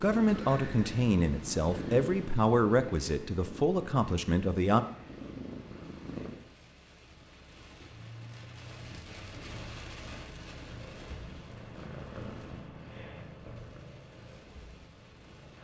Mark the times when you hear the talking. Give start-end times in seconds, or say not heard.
0.0-4.8.